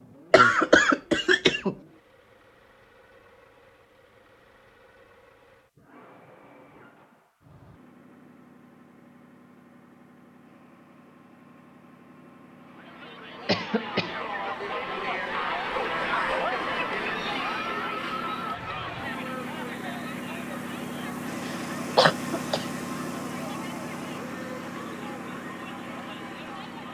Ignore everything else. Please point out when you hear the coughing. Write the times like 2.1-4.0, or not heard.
0.3-1.8, 13.4-14.2, 21.4-22.6.